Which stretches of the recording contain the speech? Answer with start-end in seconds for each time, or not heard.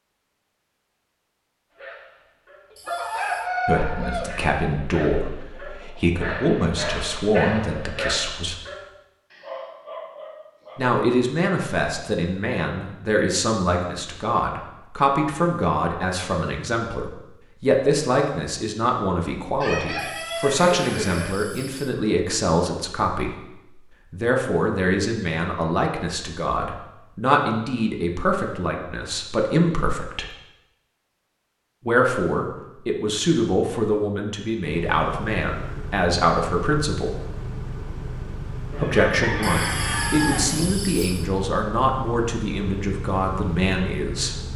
3.6-8.6, 10.8-23.3, 24.1-30.3, 31.9-37.1, 38.8-44.4.